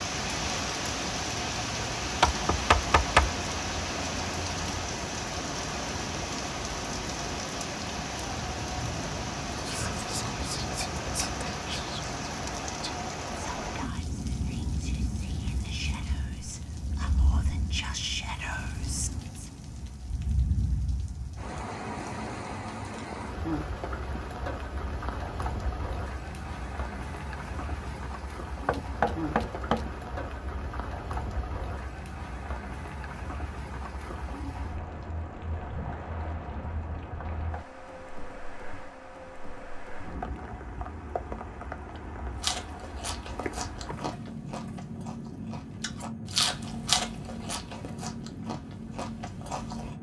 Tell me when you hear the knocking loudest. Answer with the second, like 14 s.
3 s.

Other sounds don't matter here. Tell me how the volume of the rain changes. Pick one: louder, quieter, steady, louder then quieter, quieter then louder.
quieter.